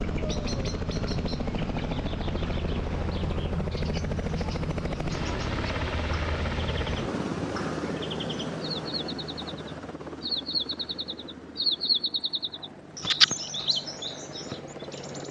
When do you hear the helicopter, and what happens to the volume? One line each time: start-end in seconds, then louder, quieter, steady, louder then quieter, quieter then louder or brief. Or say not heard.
0.0-15.2 quieter.